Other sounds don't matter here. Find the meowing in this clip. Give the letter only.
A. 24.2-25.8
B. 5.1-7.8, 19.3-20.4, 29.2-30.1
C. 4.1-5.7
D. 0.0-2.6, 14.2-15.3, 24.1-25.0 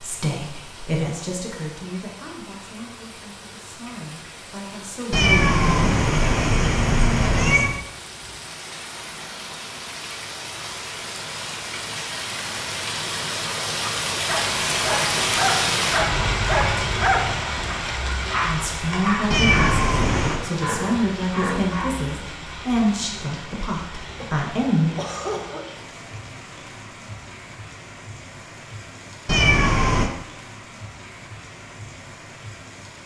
B.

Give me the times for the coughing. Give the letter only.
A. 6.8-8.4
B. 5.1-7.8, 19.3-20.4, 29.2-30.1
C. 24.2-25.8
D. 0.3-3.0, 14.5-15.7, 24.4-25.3
C.